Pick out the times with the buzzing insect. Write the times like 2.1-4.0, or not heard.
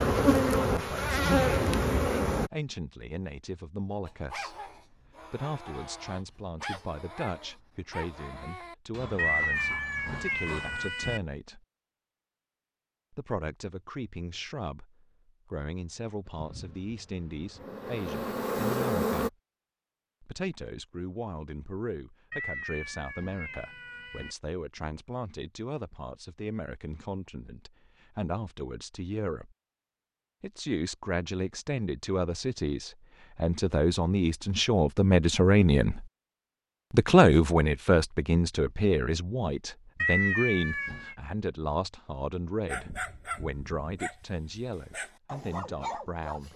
0.0-2.5, 16.2-19.3.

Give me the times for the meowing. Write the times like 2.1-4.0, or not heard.
9.2-11.2, 22.3-24.4, 40.0-41.1.